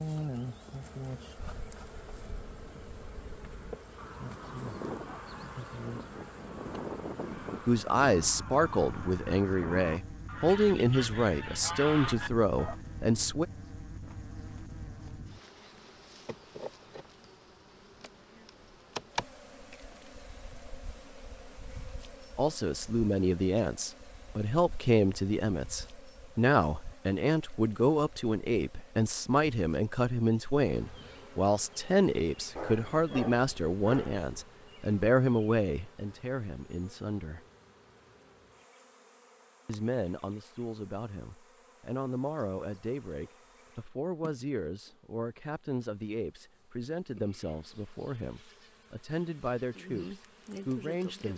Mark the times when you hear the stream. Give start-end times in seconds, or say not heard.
not heard.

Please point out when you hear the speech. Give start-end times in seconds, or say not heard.
7.7-13.4, 22.4-37.5, 39.6-51.3.